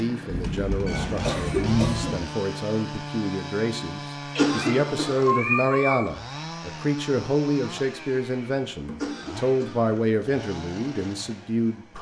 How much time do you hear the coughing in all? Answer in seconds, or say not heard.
4 s.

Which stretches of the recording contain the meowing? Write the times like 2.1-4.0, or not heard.
0.8-2.2, 4.3-6.0, 8.7-9.2.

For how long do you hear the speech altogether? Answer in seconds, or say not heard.
12 s.